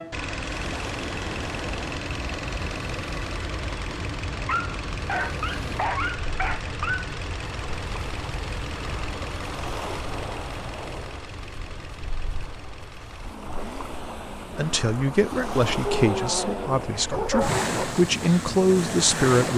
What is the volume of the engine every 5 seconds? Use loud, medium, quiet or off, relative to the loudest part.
loud, loud, medium, medium.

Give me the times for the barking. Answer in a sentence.
The barking can be heard from 4.5 to 7.0 s and from 15.8 to 17.9 s.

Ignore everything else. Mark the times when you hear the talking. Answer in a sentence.
The talking can be heard from 14.4 to 19.5 s.